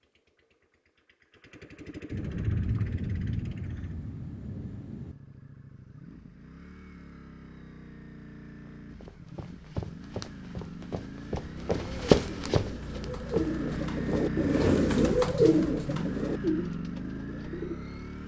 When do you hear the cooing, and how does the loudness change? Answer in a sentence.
The cooing can be heard from 11.6 to 17.8 s, getting louder then quieter.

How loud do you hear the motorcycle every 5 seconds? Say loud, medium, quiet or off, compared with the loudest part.
quiet, quiet, loud, loud.